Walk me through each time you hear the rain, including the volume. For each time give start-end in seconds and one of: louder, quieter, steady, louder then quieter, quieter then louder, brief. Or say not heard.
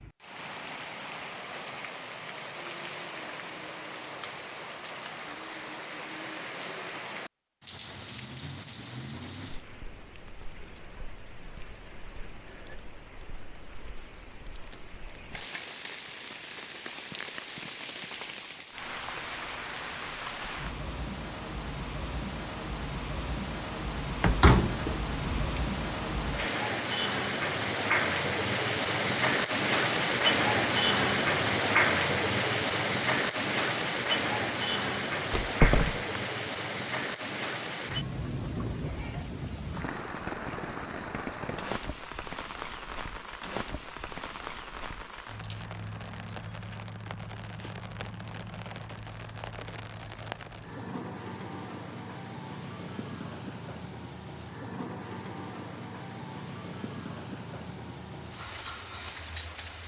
0.0-59.8 louder then quieter.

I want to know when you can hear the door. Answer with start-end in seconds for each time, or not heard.
24.2-25.6, 35.3-36.0.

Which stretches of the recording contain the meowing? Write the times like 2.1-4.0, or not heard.
not heard.